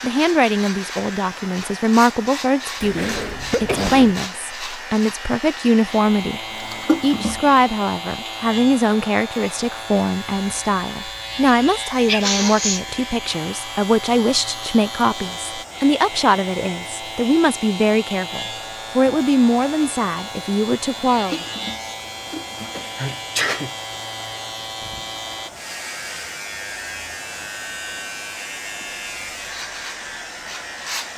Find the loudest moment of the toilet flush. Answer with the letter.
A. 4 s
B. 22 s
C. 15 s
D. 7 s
D.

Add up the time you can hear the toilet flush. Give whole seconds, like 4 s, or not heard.
3 s.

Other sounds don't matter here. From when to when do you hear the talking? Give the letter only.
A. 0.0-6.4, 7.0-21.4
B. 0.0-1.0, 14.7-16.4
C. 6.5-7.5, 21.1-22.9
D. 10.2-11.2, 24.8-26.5
A.